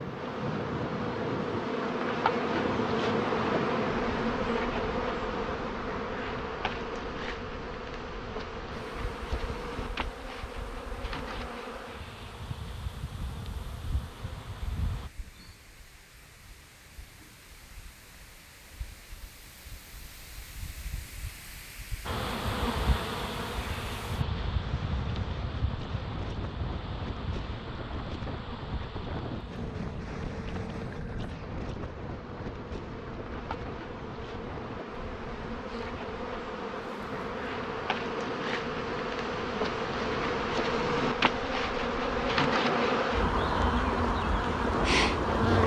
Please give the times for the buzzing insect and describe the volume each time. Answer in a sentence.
The buzzing insect can be heard from 0.0 to 15.1 s, getting quieter; and from 22.1 to 45.6 s, getting quieter then louder.